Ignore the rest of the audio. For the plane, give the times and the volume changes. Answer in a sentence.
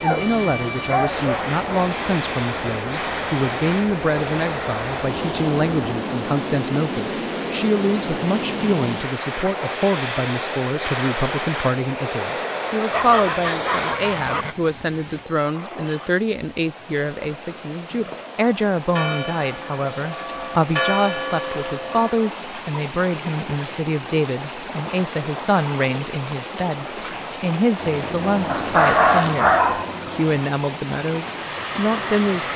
The plane can be heard from 0.0 to 14.6 s, at a steady volume; and from 27.8 to 32.5 s, getting quieter then louder.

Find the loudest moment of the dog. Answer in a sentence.
The volume of the dog peaks at 29 seconds.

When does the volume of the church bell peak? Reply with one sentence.
The loudest moment of the church bell is at 21 seconds.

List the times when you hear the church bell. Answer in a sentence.
The church bell can be heard from 18.9 to 22.3 s.